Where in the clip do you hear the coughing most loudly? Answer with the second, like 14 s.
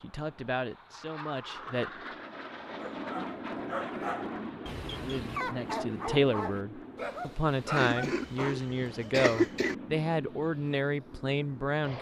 9 s.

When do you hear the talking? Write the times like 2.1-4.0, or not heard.
0.0-1.9, 5.0-11.9.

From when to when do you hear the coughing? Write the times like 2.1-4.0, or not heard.
7.8-9.8.